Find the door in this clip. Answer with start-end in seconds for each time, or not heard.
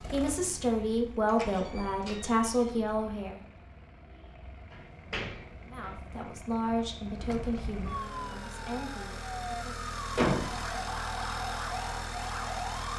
1.4-2.6, 4.7-6.0, 10.2-10.6.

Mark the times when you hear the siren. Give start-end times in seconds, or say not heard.
7.1-12.9.